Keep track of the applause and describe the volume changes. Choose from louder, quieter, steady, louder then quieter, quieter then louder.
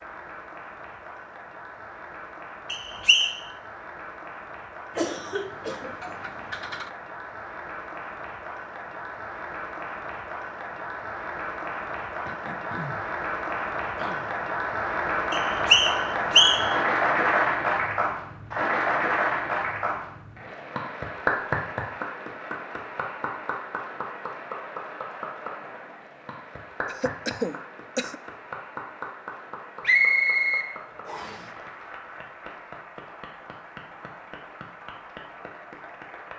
louder then quieter.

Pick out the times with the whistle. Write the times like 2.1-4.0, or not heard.
2.7-3.4, 15.3-16.8, 29.8-31.4.